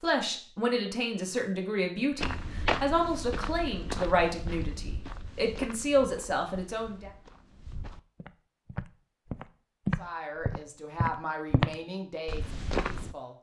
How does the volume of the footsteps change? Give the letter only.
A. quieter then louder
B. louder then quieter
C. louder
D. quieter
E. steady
A.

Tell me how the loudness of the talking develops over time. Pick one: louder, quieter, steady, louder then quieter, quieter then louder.
quieter.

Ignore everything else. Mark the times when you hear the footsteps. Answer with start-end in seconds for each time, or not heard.
2.1-13.2.